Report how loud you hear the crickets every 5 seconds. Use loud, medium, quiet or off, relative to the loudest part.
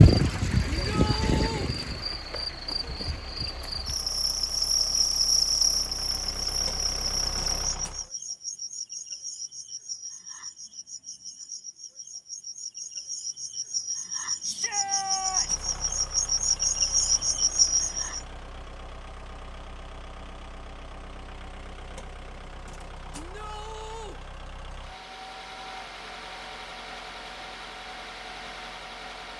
loud, loud, medium, loud, off, off.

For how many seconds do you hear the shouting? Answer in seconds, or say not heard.
3 s.